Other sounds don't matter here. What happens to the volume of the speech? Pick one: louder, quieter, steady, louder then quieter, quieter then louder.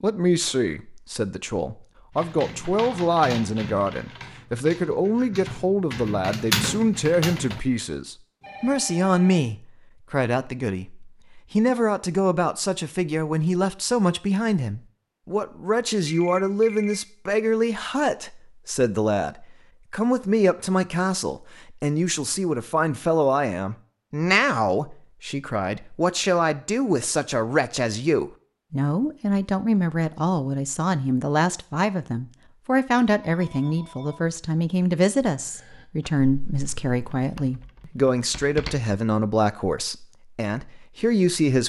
steady.